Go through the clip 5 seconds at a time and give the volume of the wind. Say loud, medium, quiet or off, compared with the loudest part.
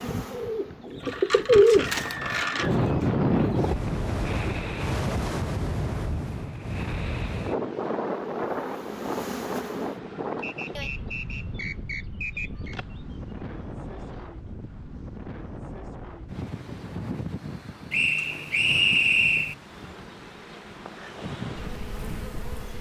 loud, loud, medium, medium, quiet.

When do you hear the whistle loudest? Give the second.
19 s.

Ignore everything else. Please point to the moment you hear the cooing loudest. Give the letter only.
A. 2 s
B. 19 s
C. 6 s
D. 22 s
A.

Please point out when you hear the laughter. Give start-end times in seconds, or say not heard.
not heard.